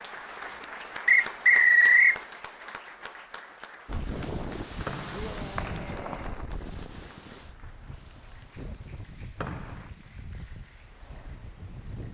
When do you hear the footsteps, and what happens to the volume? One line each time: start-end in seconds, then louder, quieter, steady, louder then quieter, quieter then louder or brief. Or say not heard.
not heard.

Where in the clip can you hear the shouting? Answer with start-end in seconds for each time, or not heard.
5.1-6.4.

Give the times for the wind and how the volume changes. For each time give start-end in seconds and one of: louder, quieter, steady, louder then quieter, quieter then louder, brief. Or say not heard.
3.9-12.0 quieter.